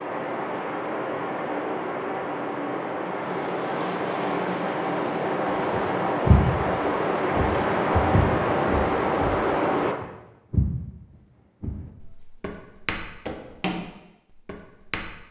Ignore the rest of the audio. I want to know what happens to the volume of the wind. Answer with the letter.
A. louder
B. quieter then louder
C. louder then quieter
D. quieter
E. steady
A.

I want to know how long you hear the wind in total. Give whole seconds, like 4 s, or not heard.
10 s.